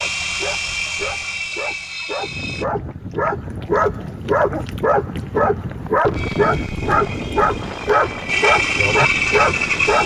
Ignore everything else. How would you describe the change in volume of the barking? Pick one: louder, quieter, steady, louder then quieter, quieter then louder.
louder.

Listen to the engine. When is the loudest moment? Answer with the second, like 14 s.
9 s.